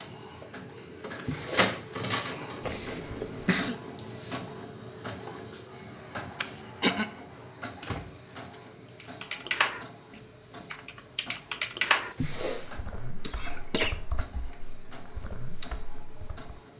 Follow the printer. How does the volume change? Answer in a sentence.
The loudness of the printer goes down.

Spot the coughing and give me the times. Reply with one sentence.
The coughing can be heard from 2.6 to 3.8 s, from 6.4 to 7.0 s and from 13.2 to 14.6 s.